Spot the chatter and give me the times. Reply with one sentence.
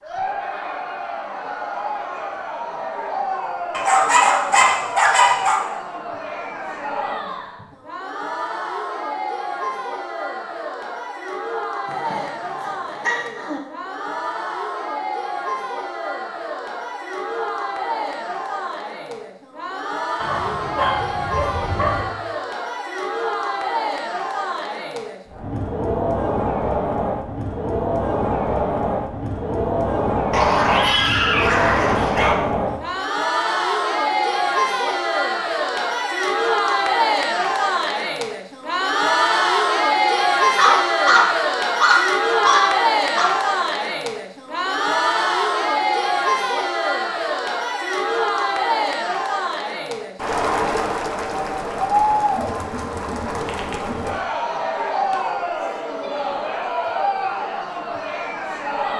You can hear the chatter from 0.0 to 58.9 s.